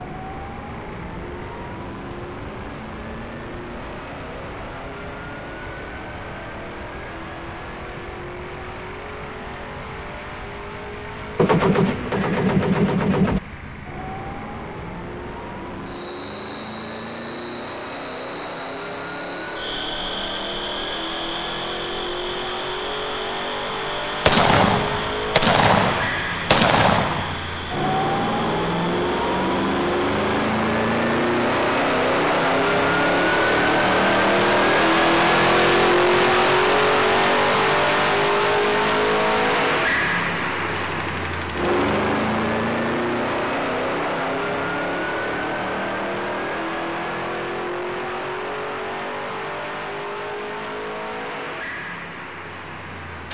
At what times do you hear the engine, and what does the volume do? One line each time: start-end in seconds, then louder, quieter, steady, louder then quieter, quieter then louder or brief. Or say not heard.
0.0-53.3 louder then quieter.